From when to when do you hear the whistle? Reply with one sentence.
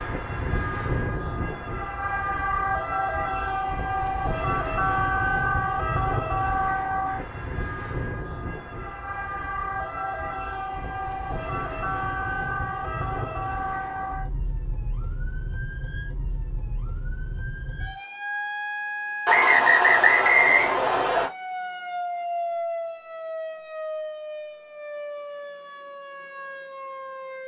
The whistle can be heard from 19.2 to 21.3 s.